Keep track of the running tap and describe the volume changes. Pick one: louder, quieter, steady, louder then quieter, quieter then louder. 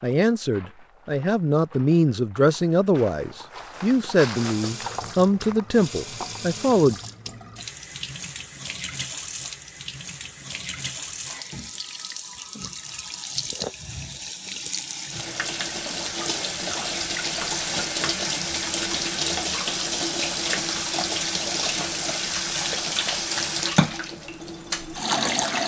louder.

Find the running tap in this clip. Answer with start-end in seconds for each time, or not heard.
4.3-25.6.